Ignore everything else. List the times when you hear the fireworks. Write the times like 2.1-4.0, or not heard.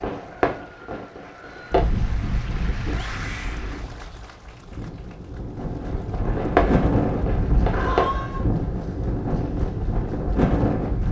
0.0-1.9, 5.8-8.5.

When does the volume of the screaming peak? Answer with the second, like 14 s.
8 s.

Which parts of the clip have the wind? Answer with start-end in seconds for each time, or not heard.
1.7-11.0.